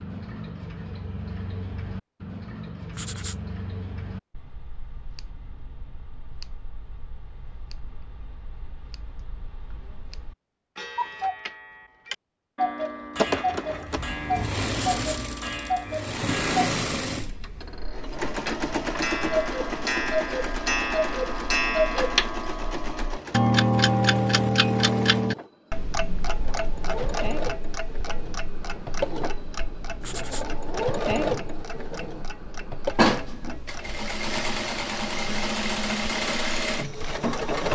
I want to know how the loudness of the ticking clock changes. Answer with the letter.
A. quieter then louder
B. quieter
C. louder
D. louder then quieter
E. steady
D.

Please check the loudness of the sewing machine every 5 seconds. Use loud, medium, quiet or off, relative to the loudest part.
off, off, loud, loud, medium, medium, loud, loud.